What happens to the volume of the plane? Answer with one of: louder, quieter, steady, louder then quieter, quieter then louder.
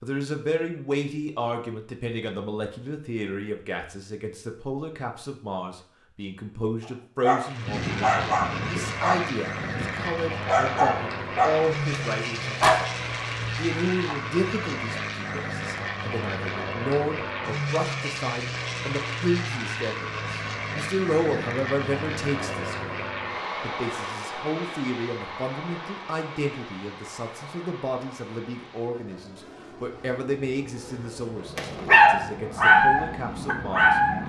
quieter.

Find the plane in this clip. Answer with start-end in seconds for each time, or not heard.
7.4-34.2.